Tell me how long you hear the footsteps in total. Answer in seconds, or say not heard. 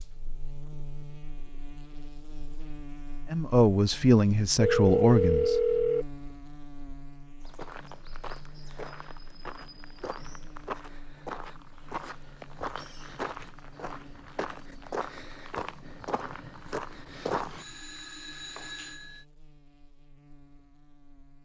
10 s.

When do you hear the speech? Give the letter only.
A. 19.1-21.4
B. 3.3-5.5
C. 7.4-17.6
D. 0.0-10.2
B.